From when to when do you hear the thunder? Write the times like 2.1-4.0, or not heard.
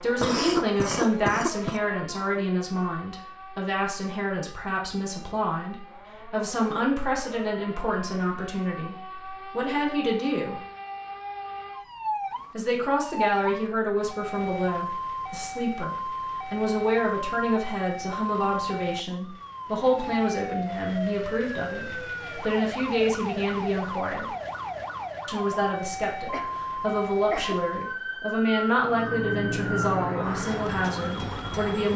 not heard.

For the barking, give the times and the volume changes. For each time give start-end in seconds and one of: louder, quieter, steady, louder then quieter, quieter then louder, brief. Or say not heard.
not heard.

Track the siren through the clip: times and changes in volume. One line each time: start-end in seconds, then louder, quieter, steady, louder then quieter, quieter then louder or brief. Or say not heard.
0.0-31.9 louder.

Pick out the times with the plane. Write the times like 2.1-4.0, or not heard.
28.8-31.8.